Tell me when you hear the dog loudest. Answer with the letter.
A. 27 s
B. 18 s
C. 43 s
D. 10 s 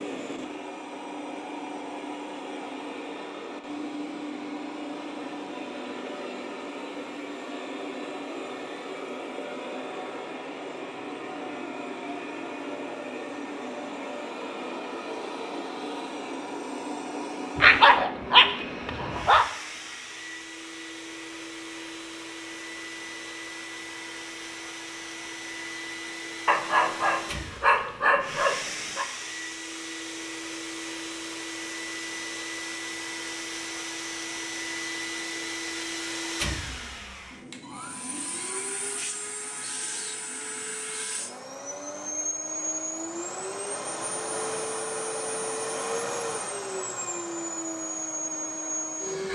B.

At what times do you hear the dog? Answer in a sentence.
You can hear the dog from 17.6 to 19.4 s and from 26.4 to 29.1 s.